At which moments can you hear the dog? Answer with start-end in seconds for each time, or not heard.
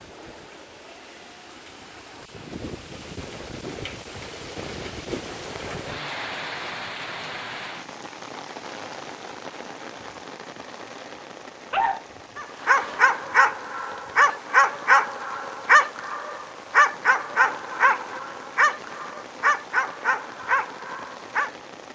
11.7-21.5.